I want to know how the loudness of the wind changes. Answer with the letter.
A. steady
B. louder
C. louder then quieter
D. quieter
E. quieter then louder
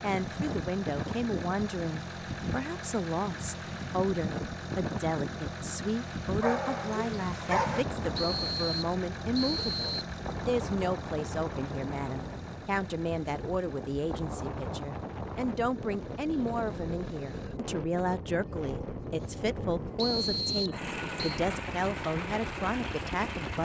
A.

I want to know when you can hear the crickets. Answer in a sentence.
The crickets can't be heard in this clip.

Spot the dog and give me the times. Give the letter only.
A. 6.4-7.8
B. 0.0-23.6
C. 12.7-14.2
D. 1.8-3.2
A.